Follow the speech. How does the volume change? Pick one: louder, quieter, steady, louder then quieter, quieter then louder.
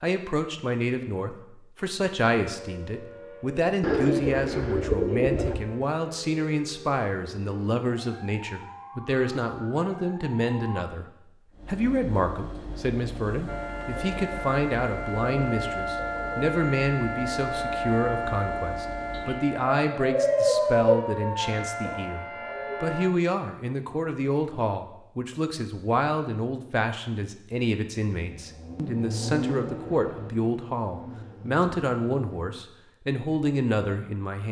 steady.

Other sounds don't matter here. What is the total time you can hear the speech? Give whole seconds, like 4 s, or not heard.
34 s.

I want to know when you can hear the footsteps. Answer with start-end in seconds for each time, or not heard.
not heard.